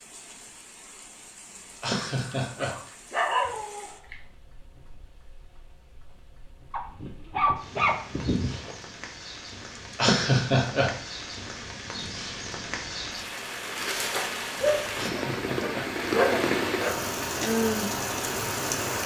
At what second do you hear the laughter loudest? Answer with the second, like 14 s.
10 s.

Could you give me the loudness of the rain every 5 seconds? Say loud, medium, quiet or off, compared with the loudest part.
quiet, quiet, medium, loud.